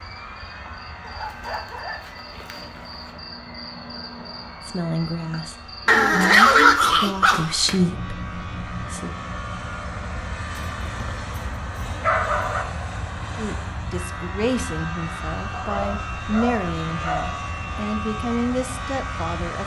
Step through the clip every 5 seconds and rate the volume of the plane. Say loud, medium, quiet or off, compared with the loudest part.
medium, medium, loud, loud.